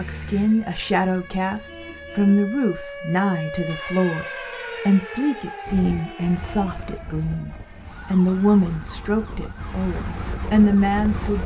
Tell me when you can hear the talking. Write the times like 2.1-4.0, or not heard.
0.0-11.4.